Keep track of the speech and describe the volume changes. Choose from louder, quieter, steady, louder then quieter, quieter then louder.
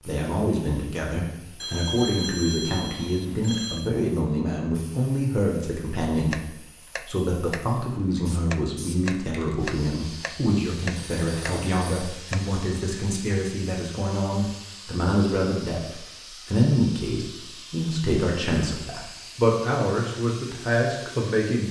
steady.